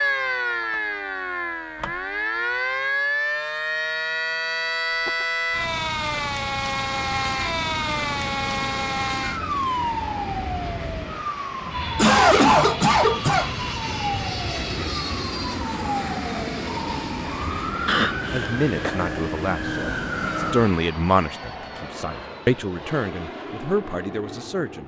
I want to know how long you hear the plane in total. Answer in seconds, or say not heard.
18 s.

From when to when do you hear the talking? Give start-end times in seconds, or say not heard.
18.3-24.8.